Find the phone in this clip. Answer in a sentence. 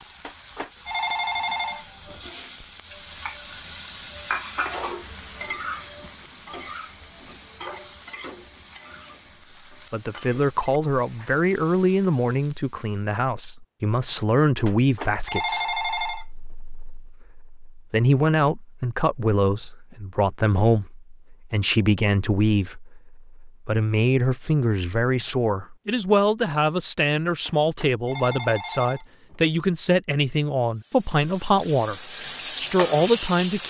The phone can be heard from 0.2 to 2.2 s, from 14.7 to 16.2 s and from 27.4 to 29.4 s.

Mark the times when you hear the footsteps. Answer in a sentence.
You can't hear the footsteps here.